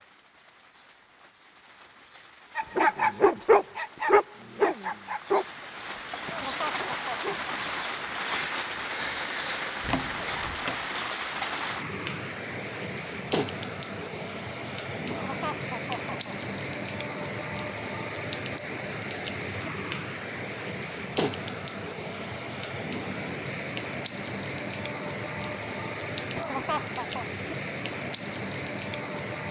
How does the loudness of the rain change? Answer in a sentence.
The loudness of the rain goes up.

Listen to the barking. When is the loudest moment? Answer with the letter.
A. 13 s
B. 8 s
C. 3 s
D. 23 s
C.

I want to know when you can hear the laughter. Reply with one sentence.
You can hear the laughter from 6.2 to 7.3 s, from 15.1 to 16.4 s and from 26.4 to 27.2 s.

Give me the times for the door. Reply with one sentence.
The door can be heard from 9.8 to 10.8 s.